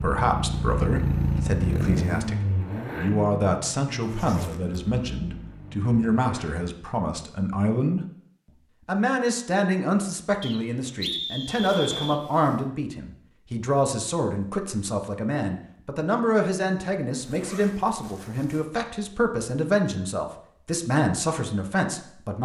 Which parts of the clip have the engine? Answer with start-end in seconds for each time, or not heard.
0.0-6.5.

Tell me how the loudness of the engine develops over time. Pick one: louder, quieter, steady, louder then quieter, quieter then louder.
quieter.